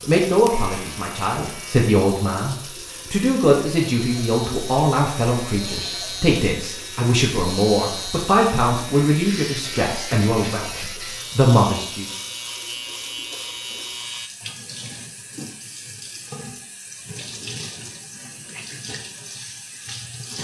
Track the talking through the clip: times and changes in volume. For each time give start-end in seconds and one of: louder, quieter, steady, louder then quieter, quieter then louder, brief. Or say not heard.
0.1-12.1 steady.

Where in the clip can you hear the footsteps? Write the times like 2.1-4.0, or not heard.
not heard.